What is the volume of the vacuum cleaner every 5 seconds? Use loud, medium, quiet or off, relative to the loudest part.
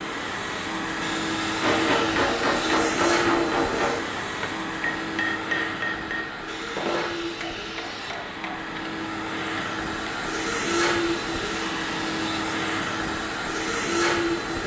loud, medium, loud.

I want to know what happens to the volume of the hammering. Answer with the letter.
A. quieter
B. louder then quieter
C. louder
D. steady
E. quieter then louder
A.